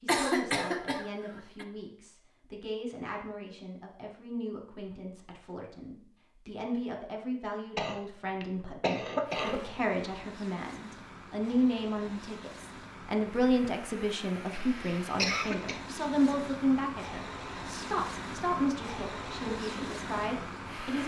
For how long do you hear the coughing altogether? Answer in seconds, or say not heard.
5 s.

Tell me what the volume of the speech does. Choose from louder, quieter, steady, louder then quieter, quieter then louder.
louder.